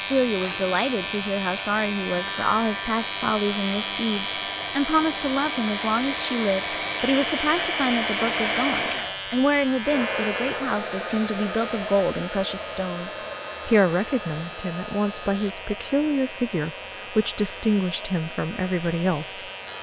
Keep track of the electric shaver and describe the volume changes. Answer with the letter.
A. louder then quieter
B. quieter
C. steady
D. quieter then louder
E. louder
B.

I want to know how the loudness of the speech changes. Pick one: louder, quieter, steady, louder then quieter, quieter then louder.
steady.